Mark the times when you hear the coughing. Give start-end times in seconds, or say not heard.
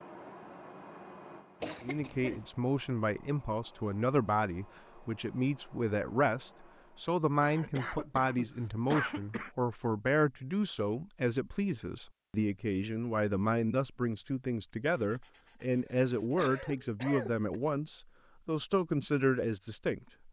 1.6-2.5, 7.4-9.5, 15.4-17.6.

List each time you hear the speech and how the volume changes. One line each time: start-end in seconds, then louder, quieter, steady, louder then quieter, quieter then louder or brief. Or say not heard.
1.8-20.1 steady.